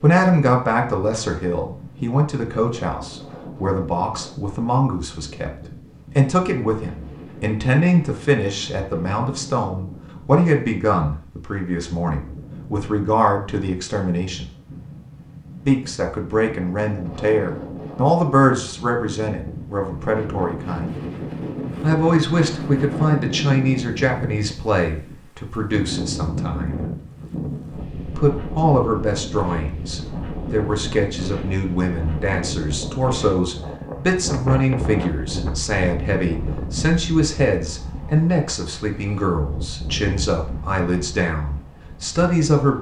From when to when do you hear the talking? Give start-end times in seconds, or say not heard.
0.0-5.5, 6.2-14.4, 15.7-21.0, 21.8-26.9, 28.1-42.7.